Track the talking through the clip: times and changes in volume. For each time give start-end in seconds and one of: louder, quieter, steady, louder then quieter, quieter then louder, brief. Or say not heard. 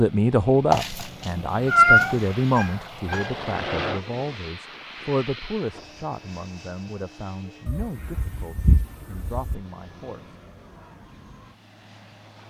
0.0-10.3 quieter.